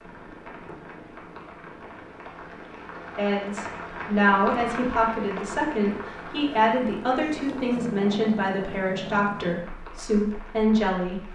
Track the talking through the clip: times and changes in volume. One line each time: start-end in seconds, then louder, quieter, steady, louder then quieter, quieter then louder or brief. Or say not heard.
3.1-11.2 steady.